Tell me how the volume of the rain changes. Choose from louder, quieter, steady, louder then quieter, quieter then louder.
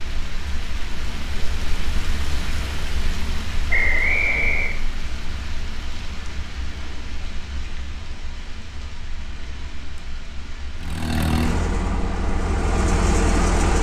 quieter.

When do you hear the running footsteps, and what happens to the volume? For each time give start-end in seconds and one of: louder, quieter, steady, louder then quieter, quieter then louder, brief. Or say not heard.
not heard.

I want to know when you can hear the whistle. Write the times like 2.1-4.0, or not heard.
3.7-4.8.